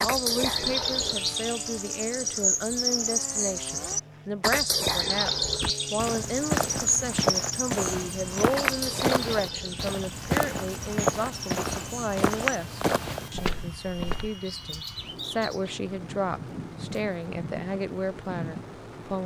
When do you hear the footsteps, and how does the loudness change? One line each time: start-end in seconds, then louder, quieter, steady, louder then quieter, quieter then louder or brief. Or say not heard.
5.5-14.3 steady.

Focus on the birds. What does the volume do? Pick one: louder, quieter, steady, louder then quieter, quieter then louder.
quieter.